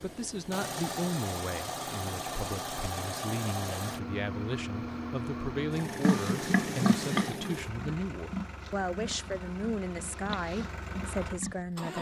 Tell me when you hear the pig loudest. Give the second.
7 s.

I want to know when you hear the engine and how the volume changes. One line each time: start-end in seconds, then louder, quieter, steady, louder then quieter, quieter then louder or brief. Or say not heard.
0.0-11.9 quieter.